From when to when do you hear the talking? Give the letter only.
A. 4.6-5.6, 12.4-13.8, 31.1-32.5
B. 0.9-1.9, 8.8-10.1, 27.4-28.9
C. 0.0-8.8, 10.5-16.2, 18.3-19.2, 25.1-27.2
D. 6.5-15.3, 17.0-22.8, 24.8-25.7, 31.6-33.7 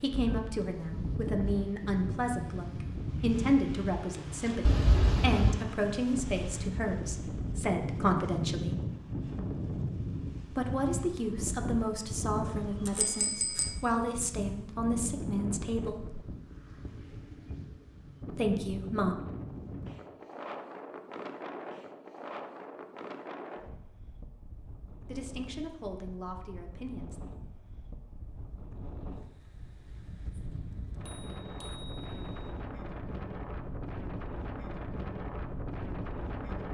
C.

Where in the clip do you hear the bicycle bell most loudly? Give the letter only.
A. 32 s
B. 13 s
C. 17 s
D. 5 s
D.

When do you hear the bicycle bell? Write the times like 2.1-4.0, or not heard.
4.6-5.6, 12.4-13.8, 31.1-32.5.